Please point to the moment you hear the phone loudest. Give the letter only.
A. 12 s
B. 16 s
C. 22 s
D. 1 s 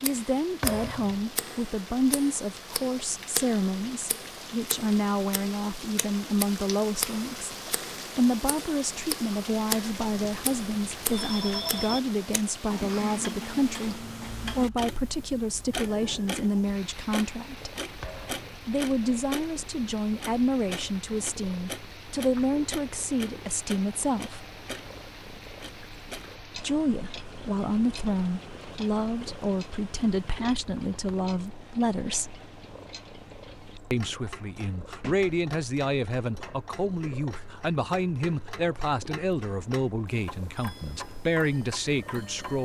A.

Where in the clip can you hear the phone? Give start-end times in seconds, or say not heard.
10.2-12.0.